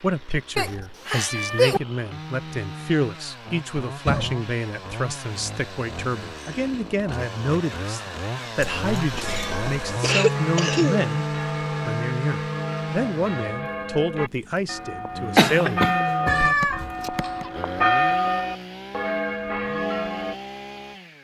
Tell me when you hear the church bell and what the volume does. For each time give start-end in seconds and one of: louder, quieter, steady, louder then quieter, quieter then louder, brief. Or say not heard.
9.2-20.4 louder.